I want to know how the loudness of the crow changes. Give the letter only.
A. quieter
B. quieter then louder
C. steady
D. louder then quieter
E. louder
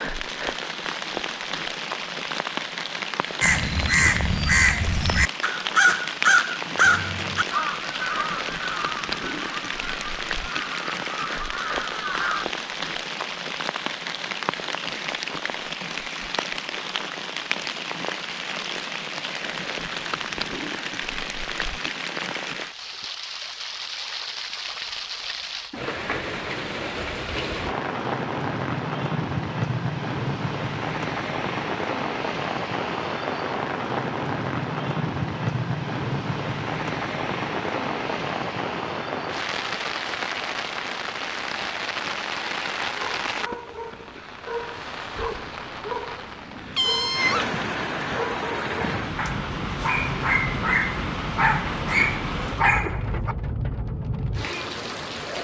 A.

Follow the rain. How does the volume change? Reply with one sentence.
The loudness of the rain stays about the same.